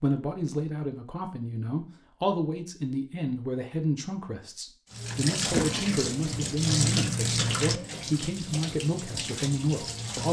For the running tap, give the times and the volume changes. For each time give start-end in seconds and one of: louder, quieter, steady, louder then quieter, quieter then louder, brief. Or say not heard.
4.9-10.2 quieter.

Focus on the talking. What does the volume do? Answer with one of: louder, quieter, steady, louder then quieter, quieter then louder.
steady.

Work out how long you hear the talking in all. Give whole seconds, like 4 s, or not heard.
10 s.